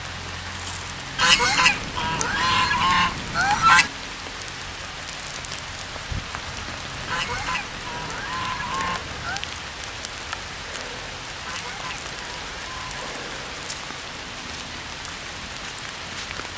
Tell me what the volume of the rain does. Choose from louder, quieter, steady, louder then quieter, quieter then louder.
steady.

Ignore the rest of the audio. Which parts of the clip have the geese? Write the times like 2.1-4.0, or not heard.
1.1-3.9, 7.0-9.4, 11.4-13.2.